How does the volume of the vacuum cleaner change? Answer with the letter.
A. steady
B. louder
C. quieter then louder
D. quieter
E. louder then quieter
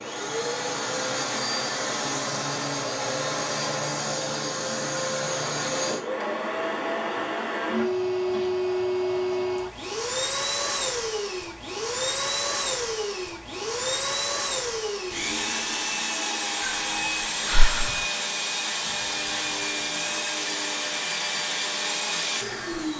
A.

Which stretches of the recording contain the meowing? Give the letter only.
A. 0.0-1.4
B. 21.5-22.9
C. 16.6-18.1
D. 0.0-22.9
C.